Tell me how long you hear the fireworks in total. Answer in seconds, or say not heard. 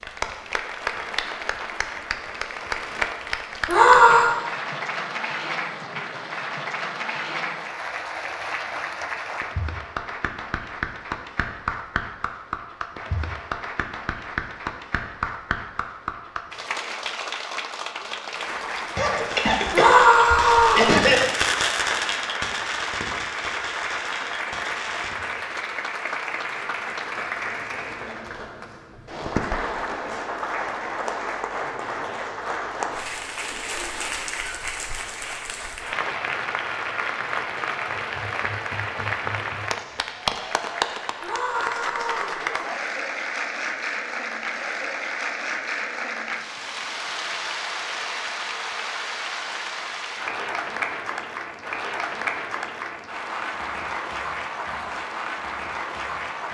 6 s.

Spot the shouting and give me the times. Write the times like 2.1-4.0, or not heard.
3.6-4.3, 19.7-20.9, 41.2-42.4.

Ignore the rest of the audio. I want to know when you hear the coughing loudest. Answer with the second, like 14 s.
21 s.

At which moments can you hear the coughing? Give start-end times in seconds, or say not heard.
18.9-21.2.